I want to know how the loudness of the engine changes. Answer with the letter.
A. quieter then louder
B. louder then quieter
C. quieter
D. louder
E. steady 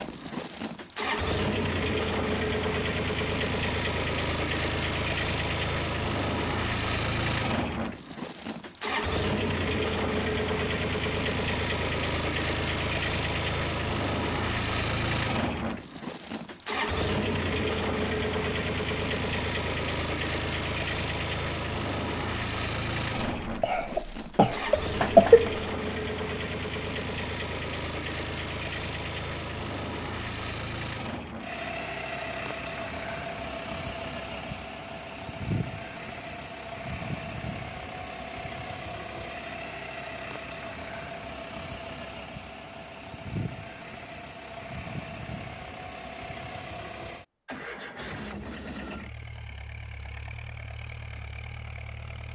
C.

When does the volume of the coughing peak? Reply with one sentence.
The volume of the coughing peaks at 25 seconds.